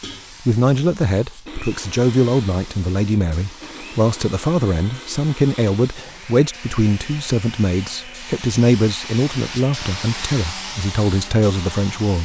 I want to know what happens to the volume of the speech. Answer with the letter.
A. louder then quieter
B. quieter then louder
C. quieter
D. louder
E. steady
E.